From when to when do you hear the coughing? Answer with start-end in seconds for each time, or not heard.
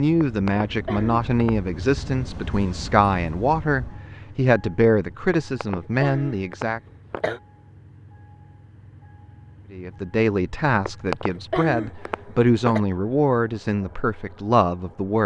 0.2-1.7, 5.3-7.4, 10.8-12.8.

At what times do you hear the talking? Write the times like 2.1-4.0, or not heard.
0.0-6.8, 9.7-15.2.